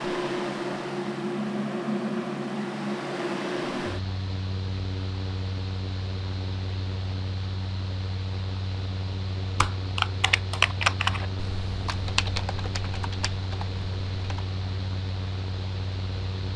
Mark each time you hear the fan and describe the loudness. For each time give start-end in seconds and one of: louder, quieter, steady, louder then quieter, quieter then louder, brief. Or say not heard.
0.0-16.5 quieter.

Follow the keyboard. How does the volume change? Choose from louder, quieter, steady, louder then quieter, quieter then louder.
quieter.